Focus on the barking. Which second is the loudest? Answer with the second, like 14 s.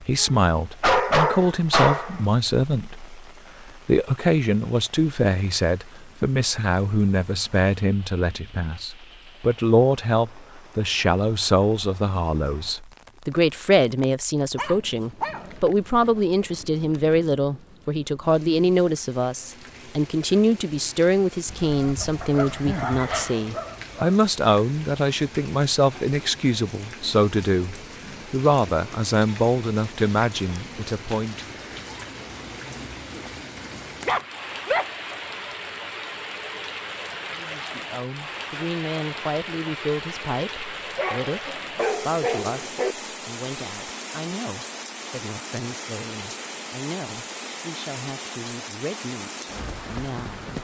1 s.